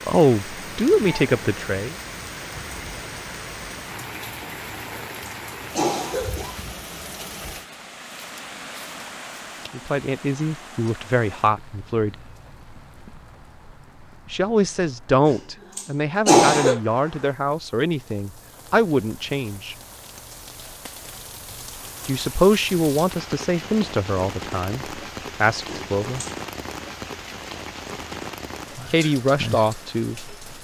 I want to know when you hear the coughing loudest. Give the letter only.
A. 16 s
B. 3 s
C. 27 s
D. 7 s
A.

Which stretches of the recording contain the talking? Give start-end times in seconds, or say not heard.
0.1-1.9, 9.7-12.2, 14.3-19.8, 22.1-26.2, 28.9-30.3.